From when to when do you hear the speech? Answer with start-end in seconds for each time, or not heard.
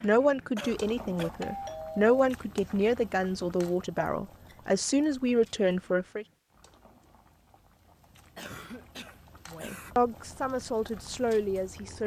0.0-6.2, 9.4-12.0.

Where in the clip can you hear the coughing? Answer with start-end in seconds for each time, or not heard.
0.6-1.3, 4.0-4.6, 8.3-9.9.